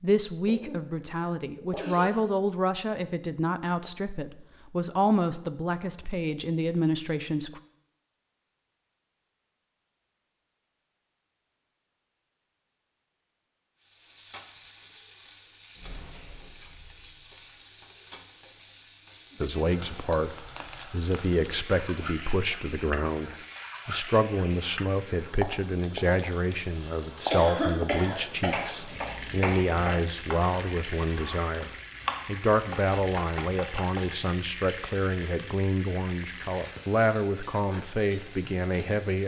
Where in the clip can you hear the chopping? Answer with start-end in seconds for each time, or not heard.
28.3-34.2.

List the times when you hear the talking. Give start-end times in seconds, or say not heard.
0.0-7.6, 19.4-39.2.